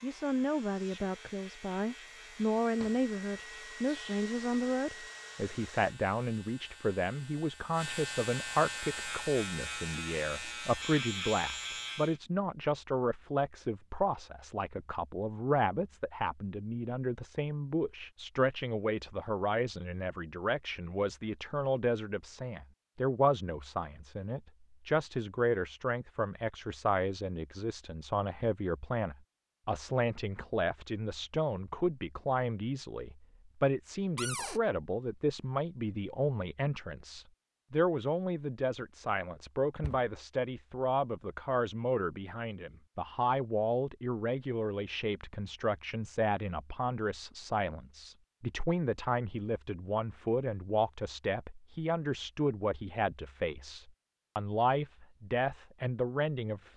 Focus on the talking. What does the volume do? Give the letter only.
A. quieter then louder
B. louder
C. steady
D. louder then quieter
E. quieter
C.